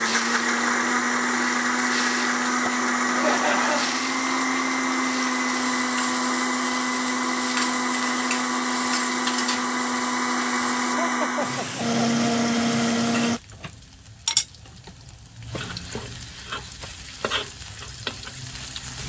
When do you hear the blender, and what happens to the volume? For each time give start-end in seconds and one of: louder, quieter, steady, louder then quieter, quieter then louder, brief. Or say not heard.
0.0-13.4 steady.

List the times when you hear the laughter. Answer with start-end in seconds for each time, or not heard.
3.0-4.0, 10.9-12.0.